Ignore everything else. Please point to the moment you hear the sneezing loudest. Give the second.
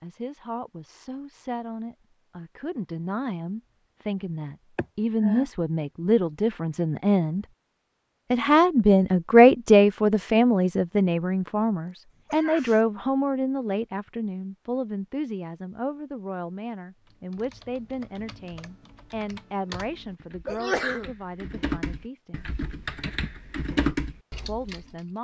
21 s.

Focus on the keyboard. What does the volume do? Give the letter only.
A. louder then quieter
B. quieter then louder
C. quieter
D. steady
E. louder
E.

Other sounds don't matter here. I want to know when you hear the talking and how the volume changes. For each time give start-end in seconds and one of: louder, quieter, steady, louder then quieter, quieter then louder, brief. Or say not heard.
0.0-7.5 louder
8.3-22.4 quieter
24.4-25.1 brief.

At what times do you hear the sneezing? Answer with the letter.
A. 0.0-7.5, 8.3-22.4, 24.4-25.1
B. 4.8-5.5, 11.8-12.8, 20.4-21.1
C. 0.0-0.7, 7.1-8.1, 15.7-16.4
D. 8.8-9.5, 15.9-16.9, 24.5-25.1
B.